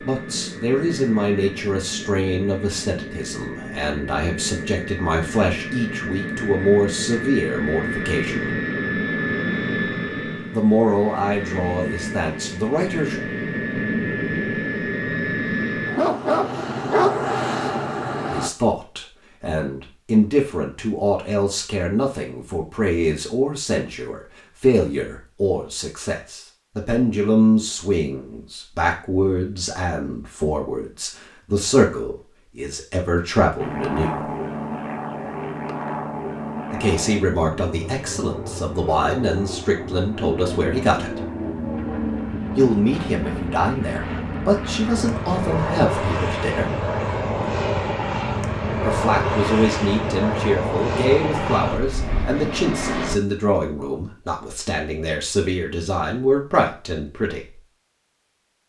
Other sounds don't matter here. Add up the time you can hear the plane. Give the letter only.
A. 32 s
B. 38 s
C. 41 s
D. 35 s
B.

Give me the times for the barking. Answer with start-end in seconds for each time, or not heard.
15.9-17.2.